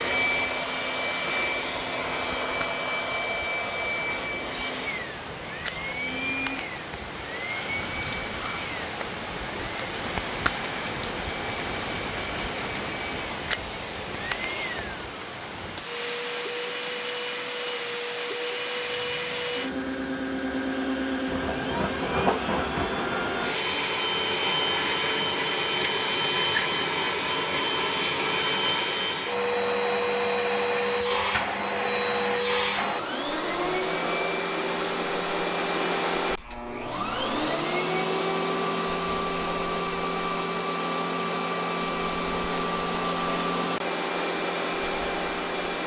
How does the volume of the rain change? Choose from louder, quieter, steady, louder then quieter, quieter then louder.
louder then quieter.